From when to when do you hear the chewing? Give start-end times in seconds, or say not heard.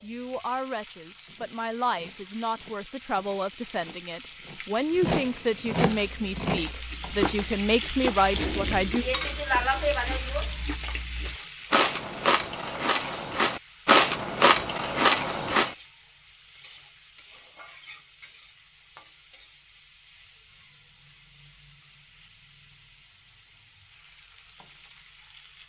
5.8-15.8.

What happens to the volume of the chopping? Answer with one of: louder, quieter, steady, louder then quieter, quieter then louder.
louder then quieter.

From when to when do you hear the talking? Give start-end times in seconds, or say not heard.
0.0-9.1.